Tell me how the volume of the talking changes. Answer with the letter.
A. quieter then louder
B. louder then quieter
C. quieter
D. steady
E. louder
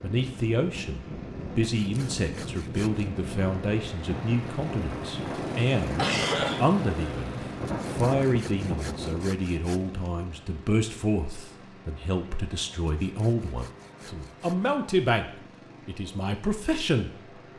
D.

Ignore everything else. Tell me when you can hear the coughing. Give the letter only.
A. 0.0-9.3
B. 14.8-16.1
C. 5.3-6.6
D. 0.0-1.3
C.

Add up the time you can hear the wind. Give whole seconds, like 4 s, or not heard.
9 s.